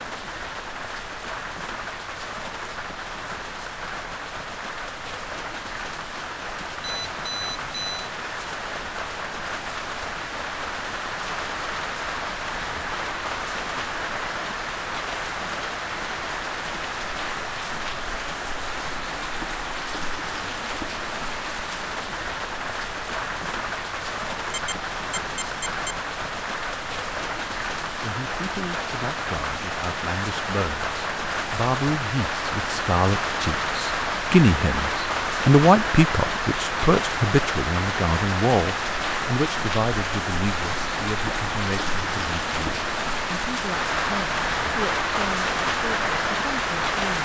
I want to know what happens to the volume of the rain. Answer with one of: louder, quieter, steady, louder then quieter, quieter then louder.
louder.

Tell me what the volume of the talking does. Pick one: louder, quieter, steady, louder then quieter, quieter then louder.
louder then quieter.